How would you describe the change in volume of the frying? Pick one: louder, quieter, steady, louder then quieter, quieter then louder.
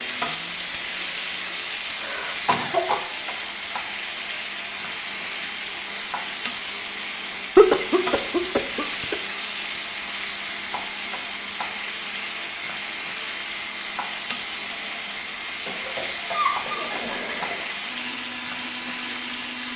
steady.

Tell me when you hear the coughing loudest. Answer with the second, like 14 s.
8 s.